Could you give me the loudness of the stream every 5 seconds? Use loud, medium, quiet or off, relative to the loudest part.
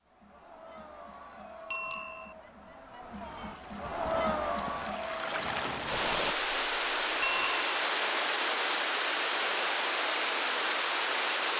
quiet, loud, loud.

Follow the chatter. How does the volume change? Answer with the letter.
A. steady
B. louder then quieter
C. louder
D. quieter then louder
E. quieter
C.